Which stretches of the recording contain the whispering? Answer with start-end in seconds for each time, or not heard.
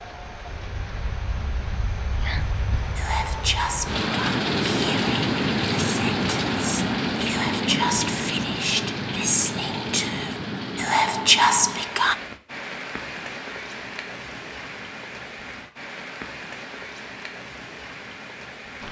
2.1-12.2.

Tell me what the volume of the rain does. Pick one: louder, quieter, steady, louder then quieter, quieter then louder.
louder then quieter.